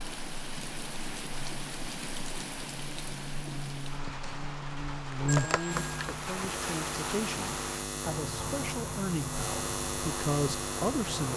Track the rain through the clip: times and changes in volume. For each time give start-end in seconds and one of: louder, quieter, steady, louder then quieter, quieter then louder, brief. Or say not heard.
0.0-11.3 steady.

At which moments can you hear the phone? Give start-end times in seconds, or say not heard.
5.2-6.2.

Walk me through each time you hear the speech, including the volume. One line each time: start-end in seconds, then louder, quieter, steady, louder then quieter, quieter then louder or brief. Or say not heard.
5.2-11.3 louder.